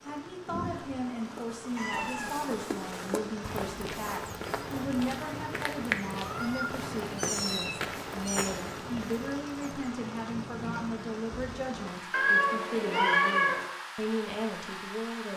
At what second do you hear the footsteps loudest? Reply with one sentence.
The loudest moment of the footsteps is at 6 seconds.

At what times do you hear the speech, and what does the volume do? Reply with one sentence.
You can hear the speech from 0.0 to 15.3 s, at a steady volume.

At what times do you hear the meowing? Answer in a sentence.
You can hear the meowing from 1.8 to 2.4 s, from 6.2 to 8.5 s and from 12.1 to 13.7 s.